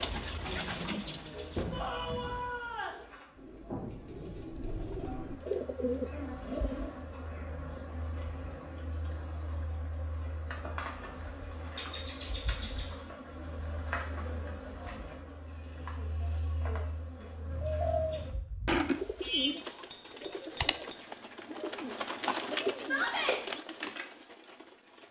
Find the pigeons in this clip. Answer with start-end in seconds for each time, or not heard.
0.0-7.0, 17.5-25.0.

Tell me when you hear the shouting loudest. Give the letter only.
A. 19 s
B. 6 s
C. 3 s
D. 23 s
D.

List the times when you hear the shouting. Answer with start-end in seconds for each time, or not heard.
1.7-3.0, 22.8-23.4.